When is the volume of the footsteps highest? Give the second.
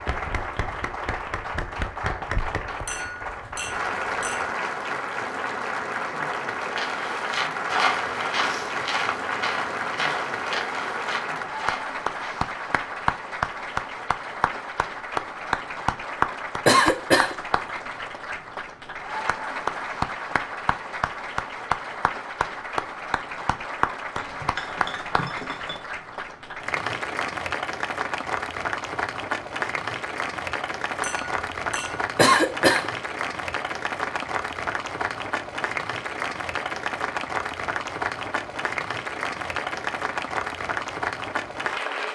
8 s.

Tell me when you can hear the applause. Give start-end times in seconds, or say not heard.
0.0-42.1.